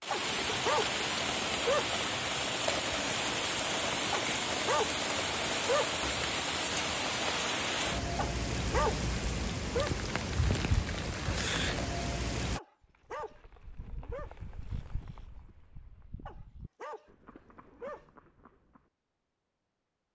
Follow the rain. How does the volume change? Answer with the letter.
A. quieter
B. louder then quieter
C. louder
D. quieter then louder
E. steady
E.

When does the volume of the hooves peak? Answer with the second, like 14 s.
15 s.